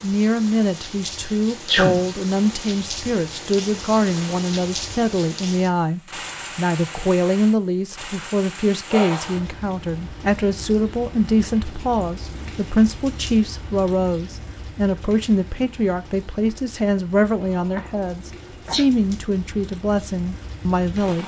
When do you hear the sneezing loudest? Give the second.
2 s.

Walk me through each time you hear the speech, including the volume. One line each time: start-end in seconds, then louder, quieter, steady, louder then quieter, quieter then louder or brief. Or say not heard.
0.0-21.2 steady.